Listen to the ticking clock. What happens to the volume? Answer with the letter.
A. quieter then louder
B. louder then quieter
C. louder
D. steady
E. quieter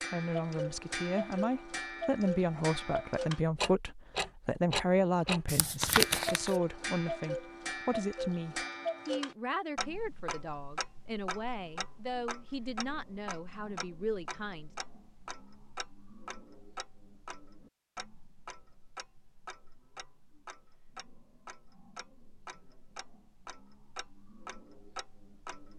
E.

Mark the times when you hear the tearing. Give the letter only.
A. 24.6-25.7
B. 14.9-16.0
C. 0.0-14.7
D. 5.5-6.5
D.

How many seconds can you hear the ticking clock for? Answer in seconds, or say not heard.
26 s.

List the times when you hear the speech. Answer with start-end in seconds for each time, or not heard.
0.0-14.7.